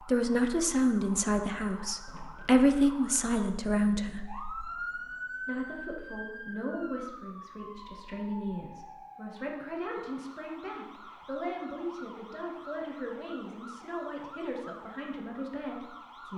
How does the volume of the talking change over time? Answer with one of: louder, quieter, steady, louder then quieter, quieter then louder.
quieter.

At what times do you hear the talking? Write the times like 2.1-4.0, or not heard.
0.1-16.3.